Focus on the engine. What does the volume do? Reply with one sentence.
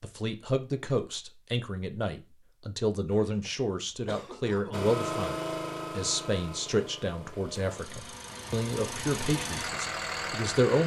The volume of the engine goes down, then up.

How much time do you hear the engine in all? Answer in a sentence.
The engine can be heard for 6 seconds in total.